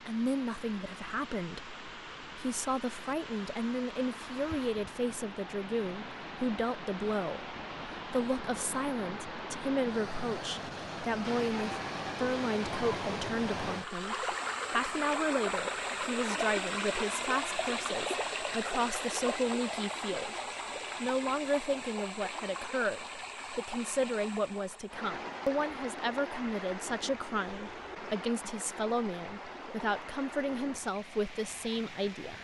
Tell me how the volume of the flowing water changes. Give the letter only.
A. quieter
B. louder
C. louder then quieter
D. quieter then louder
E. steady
C.